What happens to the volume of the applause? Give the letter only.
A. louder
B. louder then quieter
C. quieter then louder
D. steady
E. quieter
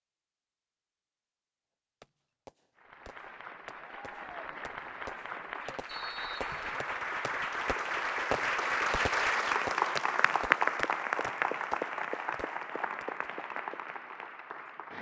B.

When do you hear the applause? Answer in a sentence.
The applause can be heard from 2.8 to 14.9 s.